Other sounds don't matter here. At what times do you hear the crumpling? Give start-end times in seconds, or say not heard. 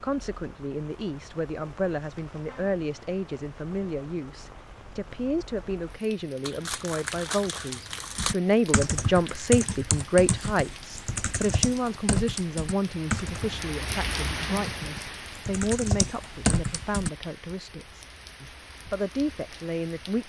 6.4-8.3.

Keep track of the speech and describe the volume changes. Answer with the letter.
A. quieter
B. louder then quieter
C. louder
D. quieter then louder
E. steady
B.